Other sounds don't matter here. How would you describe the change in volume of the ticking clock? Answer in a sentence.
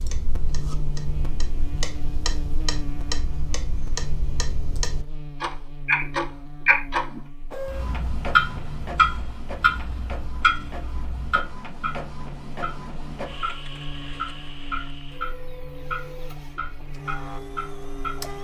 The loudness of the ticking clock goes up, then down.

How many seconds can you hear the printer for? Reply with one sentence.
The printer can be heard for 11 seconds in total.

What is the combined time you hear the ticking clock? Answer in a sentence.
The ticking clock can be heard for 18 seconds in total.